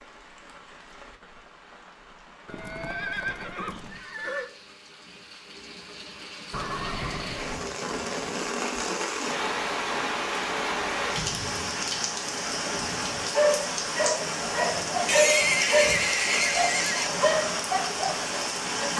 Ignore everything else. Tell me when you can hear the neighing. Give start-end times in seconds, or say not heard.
2.5-4.5, 6.5-7.7, 15.1-17.1.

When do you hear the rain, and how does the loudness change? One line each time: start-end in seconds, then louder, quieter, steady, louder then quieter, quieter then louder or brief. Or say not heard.
0.0-18.9 louder.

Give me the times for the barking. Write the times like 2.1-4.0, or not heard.
13.3-18.9.